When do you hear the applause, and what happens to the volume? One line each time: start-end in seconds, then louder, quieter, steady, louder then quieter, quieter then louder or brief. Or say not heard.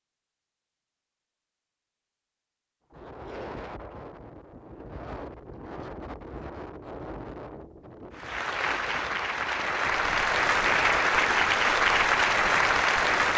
8.1-13.3 louder.